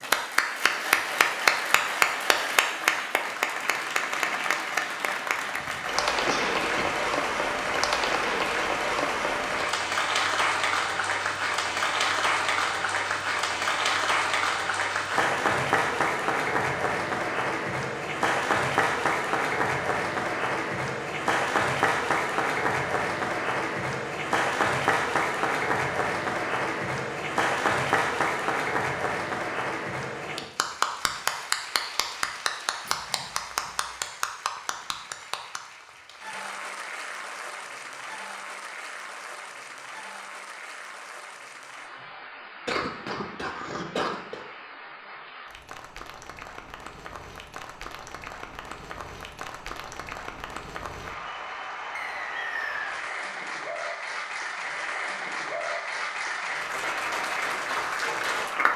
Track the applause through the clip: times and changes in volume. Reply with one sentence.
You can hear the applause from 0.0 to 58.7 s, getting quieter then louder.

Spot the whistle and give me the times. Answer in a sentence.
You can hear the whistle from 52.0 to 53.0 s.